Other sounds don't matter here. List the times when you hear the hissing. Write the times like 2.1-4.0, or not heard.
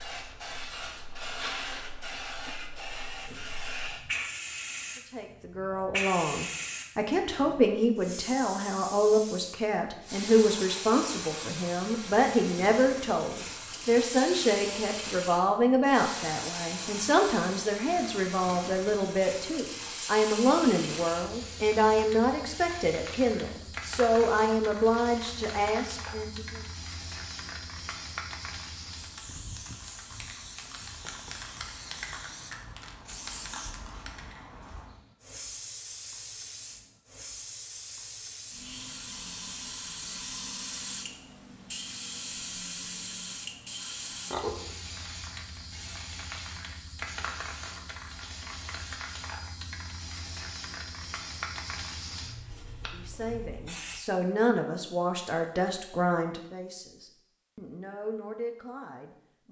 0.0-54.0.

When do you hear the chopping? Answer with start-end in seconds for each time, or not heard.
not heard.